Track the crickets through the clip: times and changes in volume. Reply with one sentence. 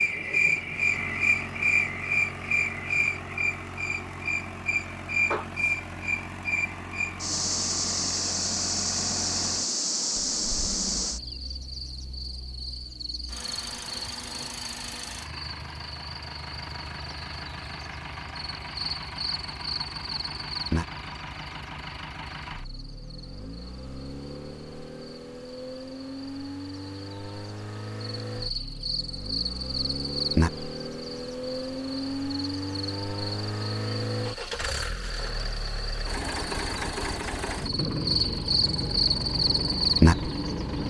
The crickets can be heard from 0.0 to 40.8 s, getting quieter then louder.